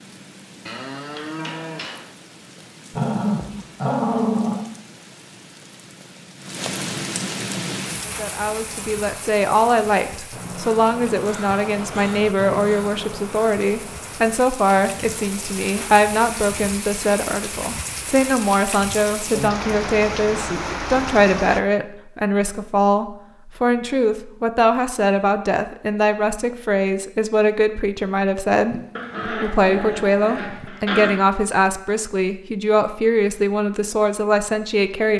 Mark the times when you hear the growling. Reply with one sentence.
You can hear the growling from 2.9 to 4.6 s and from 28.9 to 31.2 s.